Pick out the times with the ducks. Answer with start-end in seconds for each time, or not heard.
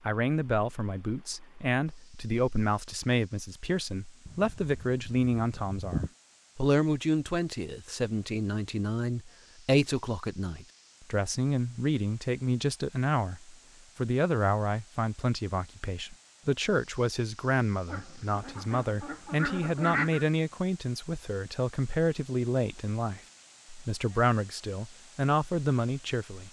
4.2-6.1, 17.9-20.2.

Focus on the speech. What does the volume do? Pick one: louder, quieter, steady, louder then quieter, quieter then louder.
steady.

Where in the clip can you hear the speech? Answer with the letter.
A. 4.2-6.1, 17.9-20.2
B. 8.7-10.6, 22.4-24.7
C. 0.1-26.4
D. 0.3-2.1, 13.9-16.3
C.